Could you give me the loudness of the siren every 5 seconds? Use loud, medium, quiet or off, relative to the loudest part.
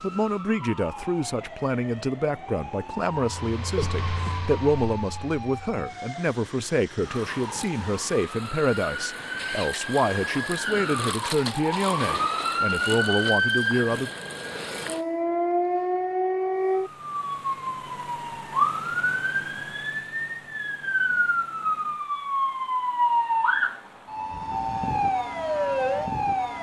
quiet, medium, loud, loud, loud, loud.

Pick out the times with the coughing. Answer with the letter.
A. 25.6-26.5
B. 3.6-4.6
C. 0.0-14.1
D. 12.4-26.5
B.